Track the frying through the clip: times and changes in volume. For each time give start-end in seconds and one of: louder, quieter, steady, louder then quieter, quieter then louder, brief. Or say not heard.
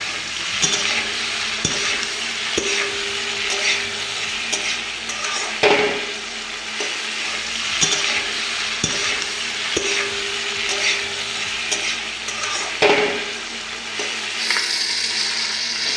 0.0-15.9 steady.